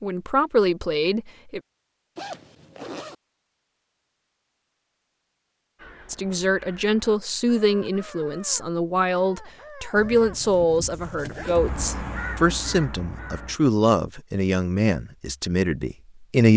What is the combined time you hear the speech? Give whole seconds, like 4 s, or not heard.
12 s.